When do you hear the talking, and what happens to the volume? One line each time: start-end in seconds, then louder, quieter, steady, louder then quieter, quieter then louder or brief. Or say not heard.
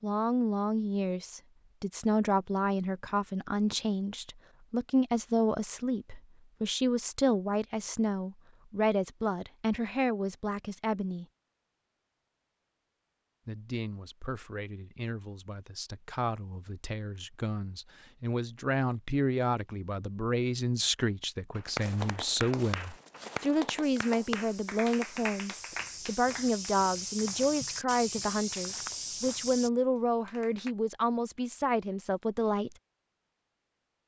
0.0-11.2 steady
13.4-32.8 louder.